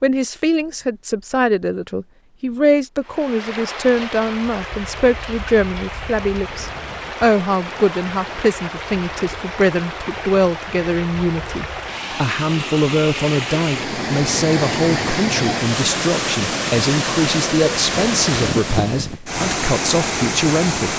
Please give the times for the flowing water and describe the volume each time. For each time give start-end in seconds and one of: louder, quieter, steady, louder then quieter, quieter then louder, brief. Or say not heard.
3.0-20.9 louder.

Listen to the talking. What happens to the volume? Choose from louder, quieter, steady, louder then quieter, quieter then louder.
steady.